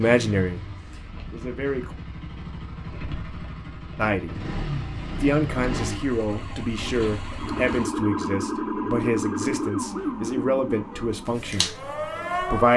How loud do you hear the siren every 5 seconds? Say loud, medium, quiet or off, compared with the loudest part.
off, loud, loud.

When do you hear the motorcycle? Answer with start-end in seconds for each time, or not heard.
0.0-7.9.